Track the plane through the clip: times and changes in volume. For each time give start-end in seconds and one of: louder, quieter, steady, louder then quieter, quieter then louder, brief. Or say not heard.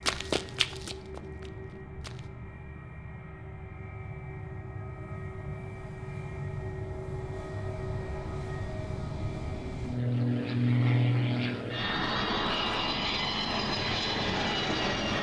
0.0-15.1 louder.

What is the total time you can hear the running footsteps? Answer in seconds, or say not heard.
2 s.